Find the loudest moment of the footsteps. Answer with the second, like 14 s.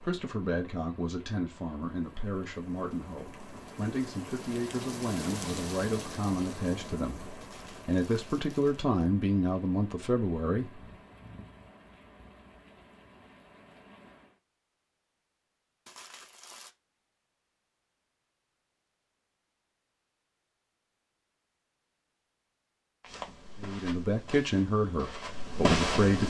26 s.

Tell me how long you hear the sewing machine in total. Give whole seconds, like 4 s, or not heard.
not heard.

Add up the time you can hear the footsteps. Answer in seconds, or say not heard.
3 s.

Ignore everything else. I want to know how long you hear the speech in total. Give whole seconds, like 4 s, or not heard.
13 s.